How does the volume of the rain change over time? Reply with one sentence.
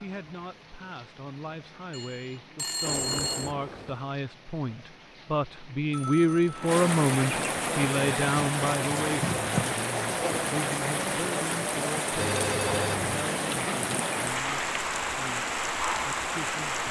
The loudness of the rain goes up.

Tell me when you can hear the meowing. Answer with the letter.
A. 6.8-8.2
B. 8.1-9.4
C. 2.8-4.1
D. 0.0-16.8
C.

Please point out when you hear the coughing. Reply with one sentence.
You can't hear the coughing here.